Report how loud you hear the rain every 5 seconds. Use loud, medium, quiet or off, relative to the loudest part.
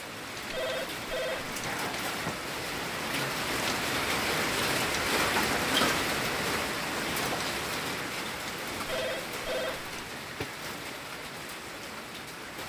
loud, loud, medium.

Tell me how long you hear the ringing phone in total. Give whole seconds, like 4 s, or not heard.
2 s.